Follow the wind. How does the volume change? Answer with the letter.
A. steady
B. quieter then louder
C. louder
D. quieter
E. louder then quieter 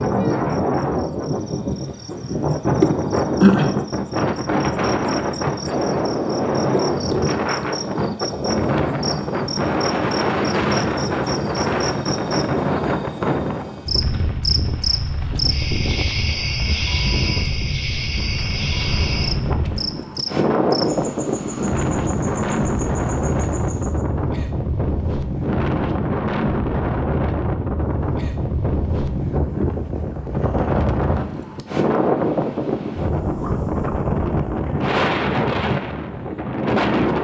A.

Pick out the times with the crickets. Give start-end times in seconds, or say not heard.
0.0-24.1.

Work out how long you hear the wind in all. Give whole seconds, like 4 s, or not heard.
37 s.